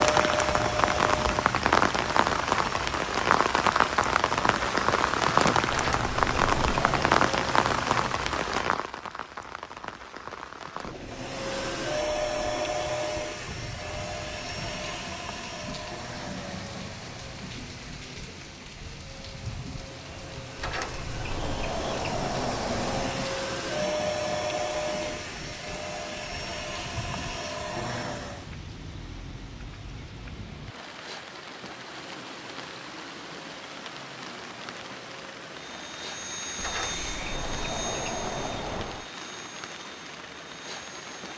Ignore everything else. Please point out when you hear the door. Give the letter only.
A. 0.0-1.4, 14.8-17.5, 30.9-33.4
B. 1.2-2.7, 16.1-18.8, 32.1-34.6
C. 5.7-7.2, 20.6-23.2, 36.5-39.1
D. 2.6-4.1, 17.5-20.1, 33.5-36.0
C.